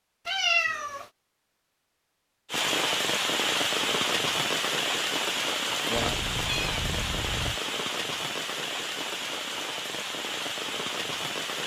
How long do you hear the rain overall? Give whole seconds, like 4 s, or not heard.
9 s.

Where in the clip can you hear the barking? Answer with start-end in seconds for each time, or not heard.
not heard.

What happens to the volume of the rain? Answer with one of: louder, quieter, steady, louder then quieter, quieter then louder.
quieter.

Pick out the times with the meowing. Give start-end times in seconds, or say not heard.
0.2-1.1, 6.0-7.6.